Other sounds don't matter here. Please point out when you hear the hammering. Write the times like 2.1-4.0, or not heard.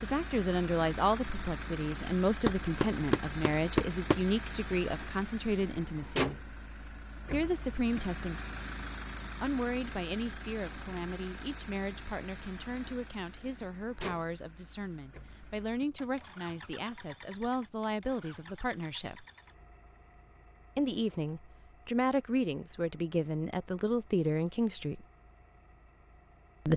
2.4-4.2.